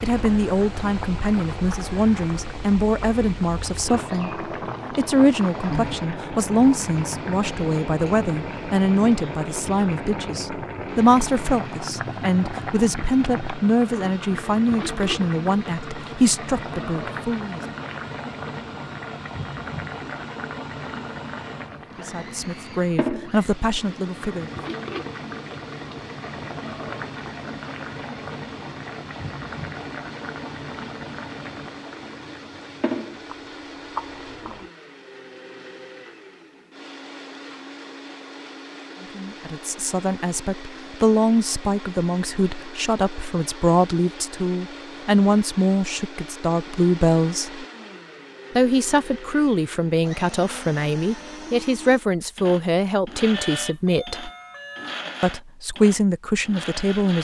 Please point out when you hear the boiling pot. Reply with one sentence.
The boiling pot can be heard from 0.0 to 34.7 s.